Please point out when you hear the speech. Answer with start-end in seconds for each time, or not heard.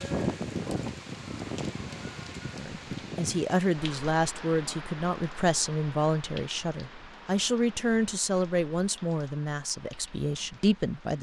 2.5-11.1.